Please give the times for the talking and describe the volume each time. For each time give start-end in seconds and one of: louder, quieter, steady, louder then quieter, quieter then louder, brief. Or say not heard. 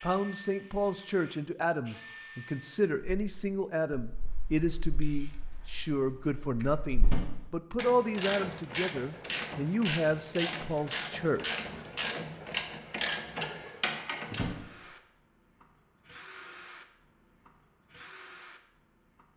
0.0-11.4 steady.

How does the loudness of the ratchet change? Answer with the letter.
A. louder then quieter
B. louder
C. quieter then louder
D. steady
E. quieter
B.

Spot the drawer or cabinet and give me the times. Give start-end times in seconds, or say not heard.
7.0-7.6, 14.3-14.8.